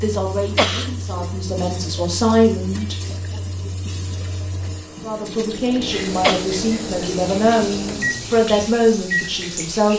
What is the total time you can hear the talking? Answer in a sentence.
You can hear the talking for 8 seconds altogether.